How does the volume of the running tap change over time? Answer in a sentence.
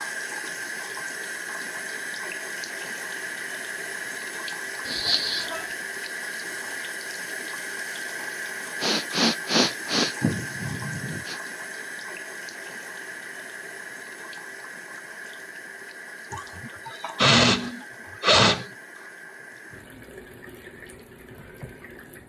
The volume of the running tap goes down.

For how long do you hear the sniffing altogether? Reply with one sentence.
The sniffing can be heard for 6 seconds in total.